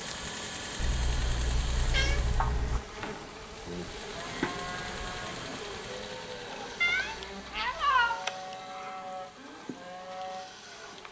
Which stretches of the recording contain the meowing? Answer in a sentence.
The meowing can be heard from 0.8 to 2.8 s and from 6.8 to 8.2 s.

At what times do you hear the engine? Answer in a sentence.
The engine can be heard from 0.0 to 2.5 s and from 3.9 to 11.0 s.